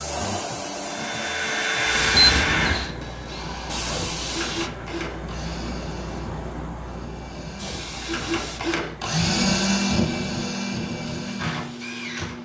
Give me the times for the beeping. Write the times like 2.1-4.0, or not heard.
2.1-2.9.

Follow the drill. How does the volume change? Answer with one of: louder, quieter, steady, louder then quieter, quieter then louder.
quieter then louder.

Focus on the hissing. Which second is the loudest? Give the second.
2 s.